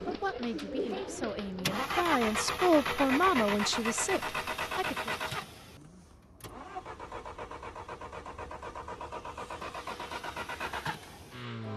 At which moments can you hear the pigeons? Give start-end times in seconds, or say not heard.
0.0-1.9.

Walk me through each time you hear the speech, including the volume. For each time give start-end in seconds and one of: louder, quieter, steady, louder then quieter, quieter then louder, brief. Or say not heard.
0.1-5.2 louder then quieter.